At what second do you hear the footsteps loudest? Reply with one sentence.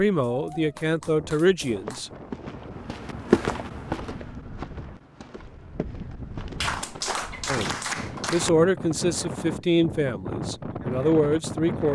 The loudest moment of the footsteps is at 3 seconds.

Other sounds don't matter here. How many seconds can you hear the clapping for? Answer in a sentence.
You can hear the clapping for 4 seconds altogether.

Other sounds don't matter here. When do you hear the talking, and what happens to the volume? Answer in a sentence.
The talking can be heard briefly from 0.0 to 2.1 s; and from 7.5 to 11.9 s, getting quieter then louder.